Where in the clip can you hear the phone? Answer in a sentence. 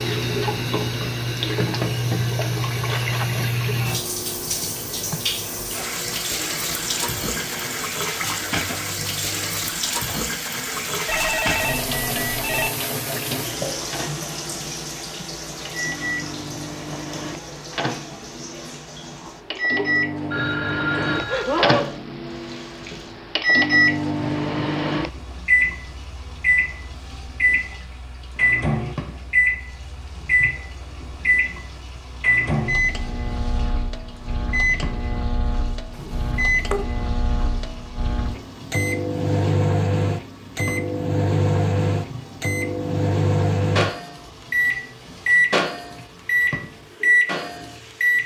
The phone can be heard from 11.1 to 12.7 s, from 20.3 to 22.0 s and from 36.0 to 36.9 s.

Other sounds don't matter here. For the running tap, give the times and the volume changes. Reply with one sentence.
The running tap can be heard from 0.0 to 48.2 s, getting quieter.